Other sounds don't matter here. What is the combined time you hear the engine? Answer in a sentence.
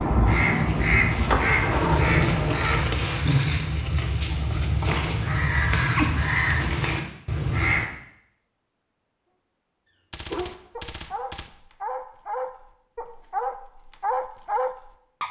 The engine can be heard for 3 seconds in total.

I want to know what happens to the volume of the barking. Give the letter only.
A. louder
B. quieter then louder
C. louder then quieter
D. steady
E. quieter
A.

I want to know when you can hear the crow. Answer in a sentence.
You can hear the crow from 0.2 to 7.8 s.